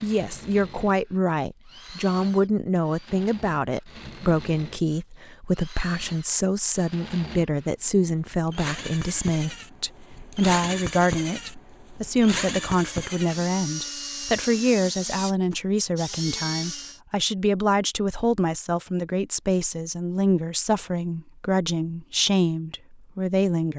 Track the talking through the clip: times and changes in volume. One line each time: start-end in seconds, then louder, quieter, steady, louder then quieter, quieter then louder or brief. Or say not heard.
0.0-23.7 steady.